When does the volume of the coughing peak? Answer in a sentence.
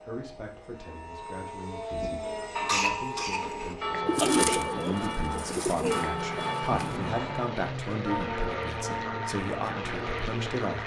The volume of the coughing peaks at 3 seconds.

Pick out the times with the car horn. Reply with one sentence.
The car horn can't be heard in this clip.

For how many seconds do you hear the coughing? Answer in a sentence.
You can hear the coughing for 2 seconds altogether.